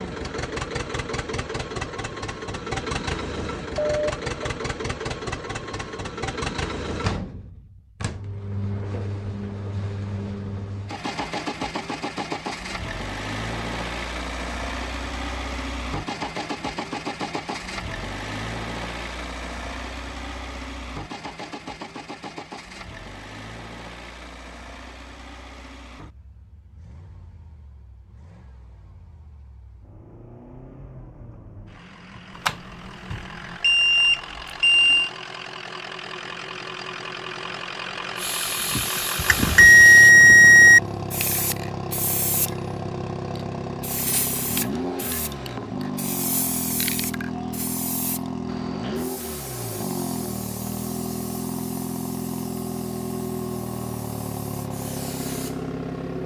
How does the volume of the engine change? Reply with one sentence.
The loudness of the engine goes down, then up.